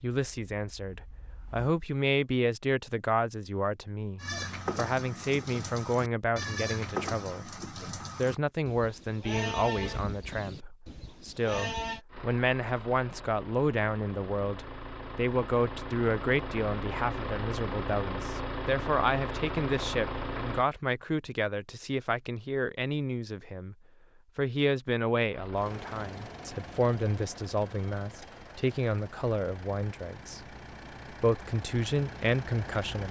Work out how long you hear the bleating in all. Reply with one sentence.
The bleating can be heard for 8 seconds in total.